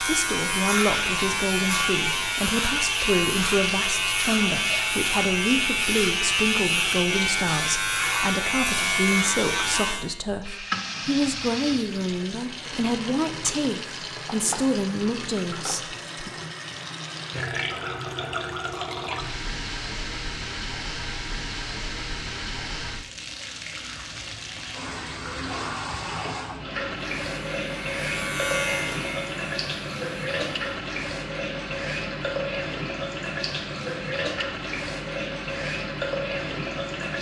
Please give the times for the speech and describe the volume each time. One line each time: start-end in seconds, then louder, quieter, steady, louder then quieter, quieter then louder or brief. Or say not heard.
0.0-16.3 steady.